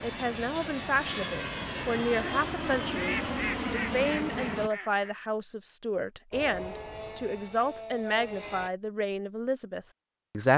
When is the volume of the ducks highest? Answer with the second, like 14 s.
3 s.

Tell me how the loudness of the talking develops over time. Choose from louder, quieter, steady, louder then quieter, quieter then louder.
steady.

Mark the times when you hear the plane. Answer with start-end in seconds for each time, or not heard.
0.0-4.7, 6.3-8.7.